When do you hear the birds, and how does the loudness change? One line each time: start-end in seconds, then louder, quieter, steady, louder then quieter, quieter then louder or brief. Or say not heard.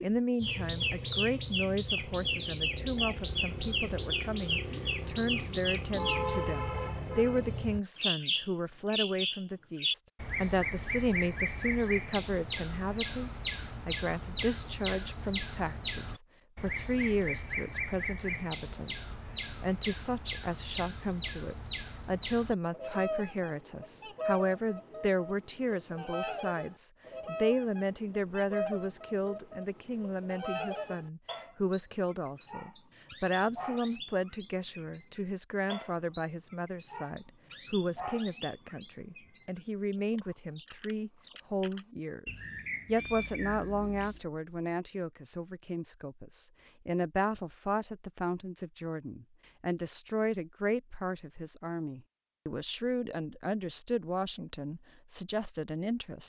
0.0-44.2 quieter.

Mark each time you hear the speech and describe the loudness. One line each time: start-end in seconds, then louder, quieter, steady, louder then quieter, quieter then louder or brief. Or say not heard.
0.0-56.2 steady.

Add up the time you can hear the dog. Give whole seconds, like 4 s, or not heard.
not heard.